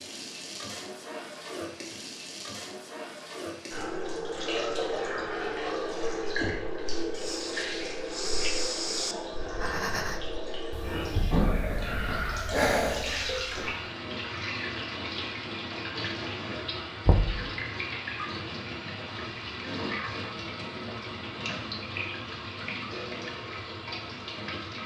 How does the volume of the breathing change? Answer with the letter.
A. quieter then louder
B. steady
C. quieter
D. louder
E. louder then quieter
A.